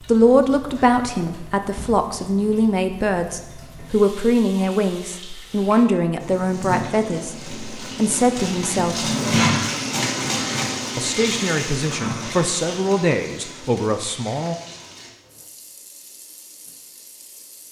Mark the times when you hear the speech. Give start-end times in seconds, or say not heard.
0.1-9.1, 10.9-14.6.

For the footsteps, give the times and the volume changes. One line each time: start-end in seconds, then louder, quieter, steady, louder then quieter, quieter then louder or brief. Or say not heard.
not heard.